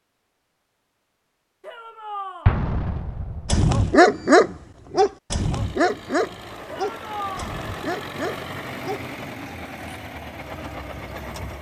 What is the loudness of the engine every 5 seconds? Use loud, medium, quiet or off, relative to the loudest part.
off, loud, loud.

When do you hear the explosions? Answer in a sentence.
You can hear the explosions from 2.5 to 3.6 s.